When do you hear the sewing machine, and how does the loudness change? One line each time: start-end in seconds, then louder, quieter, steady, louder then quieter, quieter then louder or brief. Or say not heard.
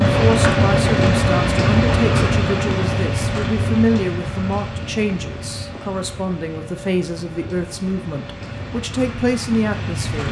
0.0-8.8 quieter.